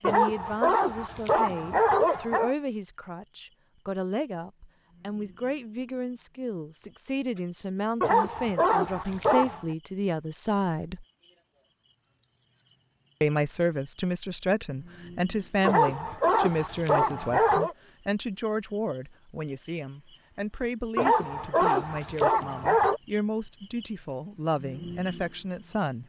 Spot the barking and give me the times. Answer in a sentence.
You can hear the barking from 0.0 to 2.5 s, from 8.0 to 9.7 s, from 15.7 to 17.8 s and from 20.9 to 23.0 s.